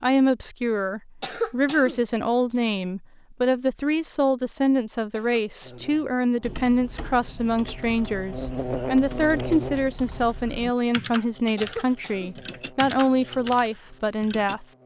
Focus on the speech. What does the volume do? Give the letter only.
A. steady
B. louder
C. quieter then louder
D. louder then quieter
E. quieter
A.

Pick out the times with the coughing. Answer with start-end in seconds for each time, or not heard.
1.2-2.6, 5.1-6.5, 11.6-12.9.